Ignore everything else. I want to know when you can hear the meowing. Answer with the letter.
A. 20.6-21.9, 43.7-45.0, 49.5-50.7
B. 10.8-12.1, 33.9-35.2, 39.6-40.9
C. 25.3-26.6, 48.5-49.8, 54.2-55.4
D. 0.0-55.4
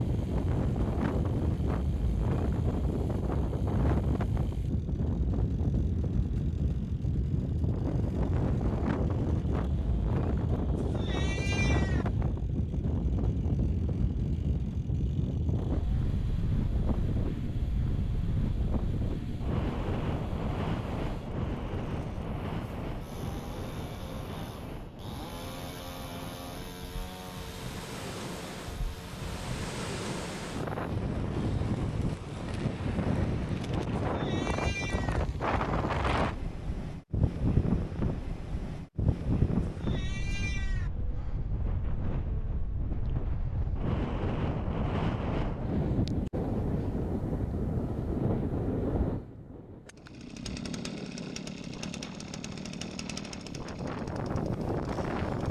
B.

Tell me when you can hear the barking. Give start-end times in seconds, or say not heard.
not heard.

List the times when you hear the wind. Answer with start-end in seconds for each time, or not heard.
0.0-55.4.